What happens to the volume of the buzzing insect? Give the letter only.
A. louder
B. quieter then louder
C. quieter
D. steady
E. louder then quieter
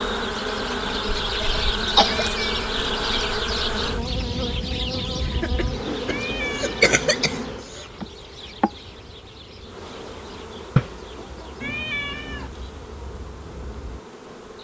C.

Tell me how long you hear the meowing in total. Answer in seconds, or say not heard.
3 s.